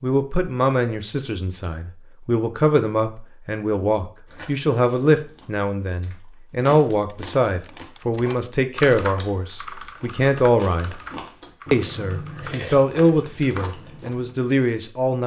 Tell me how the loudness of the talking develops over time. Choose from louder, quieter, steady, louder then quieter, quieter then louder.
steady.